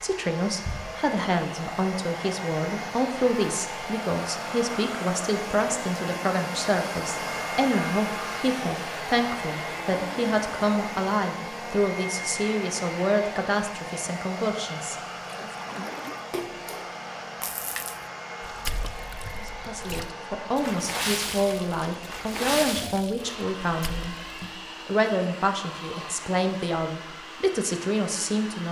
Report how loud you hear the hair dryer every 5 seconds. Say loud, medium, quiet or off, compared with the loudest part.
loud, loud, loud, medium, medium, medium.